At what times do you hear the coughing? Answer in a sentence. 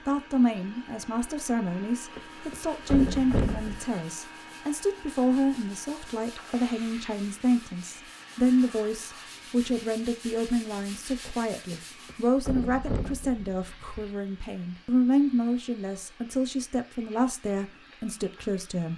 You can't hear the coughing here.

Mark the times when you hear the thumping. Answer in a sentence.
The thumping can be heard from 2.1 to 3.9 s and from 11.7 to 14.1 s.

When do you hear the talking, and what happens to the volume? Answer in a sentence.
The talking can be heard from 0.1 to 18.9 s, at a steady volume.